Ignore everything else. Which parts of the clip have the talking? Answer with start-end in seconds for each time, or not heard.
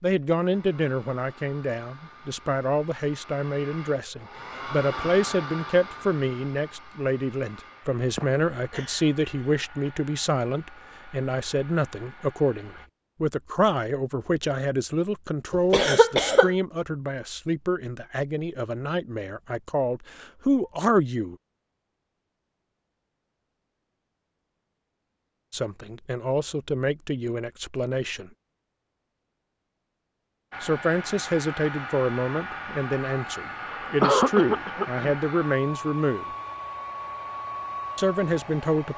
0.0-21.4, 25.5-28.3, 30.6-36.2, 38.0-38.9.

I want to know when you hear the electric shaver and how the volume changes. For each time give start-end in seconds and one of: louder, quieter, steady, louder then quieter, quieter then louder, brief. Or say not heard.
not heard.